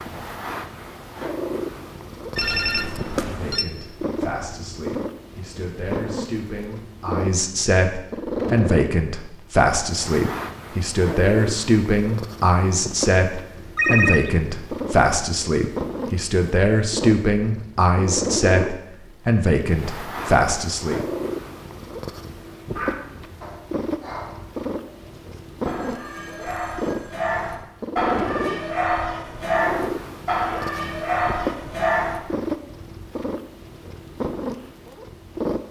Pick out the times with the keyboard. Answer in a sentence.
You can't hear the keyboard here.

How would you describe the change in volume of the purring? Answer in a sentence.
The volume of the purring stays about the same.